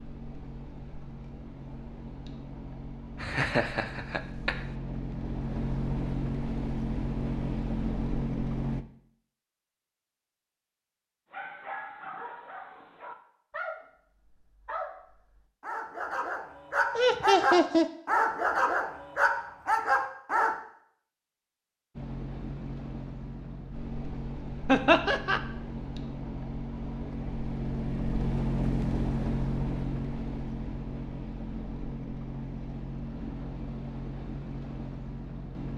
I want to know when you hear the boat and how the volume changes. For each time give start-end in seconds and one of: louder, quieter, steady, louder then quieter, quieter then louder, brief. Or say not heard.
0.0-8.8 louder
21.9-35.7 louder then quieter.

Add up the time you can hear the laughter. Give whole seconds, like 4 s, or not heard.
3 s.